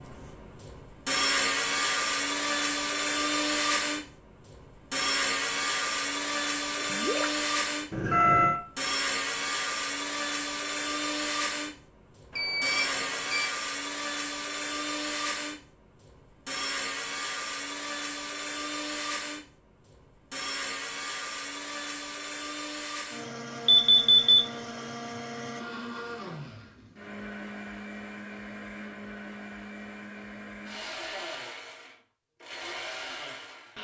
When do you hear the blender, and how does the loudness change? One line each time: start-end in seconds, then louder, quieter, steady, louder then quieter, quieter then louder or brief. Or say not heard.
0.0-33.7 quieter.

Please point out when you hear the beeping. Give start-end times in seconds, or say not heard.
7.9-8.6, 12.3-13.5, 23.6-24.4.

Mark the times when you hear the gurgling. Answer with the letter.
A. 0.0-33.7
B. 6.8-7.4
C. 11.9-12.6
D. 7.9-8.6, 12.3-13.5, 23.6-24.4
B.